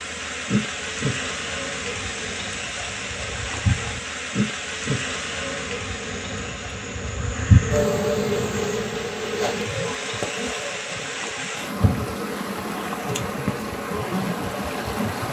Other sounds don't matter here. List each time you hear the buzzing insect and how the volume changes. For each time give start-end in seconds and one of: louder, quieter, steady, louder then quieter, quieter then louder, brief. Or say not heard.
0.0-15.2 louder then quieter.